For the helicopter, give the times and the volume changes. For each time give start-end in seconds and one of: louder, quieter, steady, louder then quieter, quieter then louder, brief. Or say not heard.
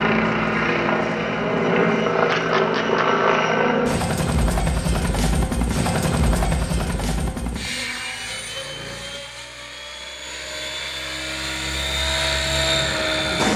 0.0-13.5 quieter then louder.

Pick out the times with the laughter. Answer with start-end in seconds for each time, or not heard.
2.1-3.0.